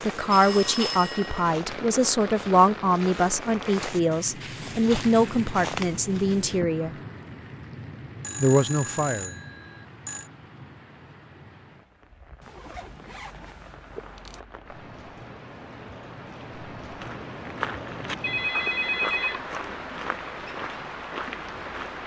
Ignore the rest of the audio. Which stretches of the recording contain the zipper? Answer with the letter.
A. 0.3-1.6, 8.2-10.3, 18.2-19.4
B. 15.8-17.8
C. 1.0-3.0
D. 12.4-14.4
D.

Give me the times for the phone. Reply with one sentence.
You can hear the phone from 0.3 to 1.6 s, from 8.2 to 10.3 s and from 18.2 to 19.4 s.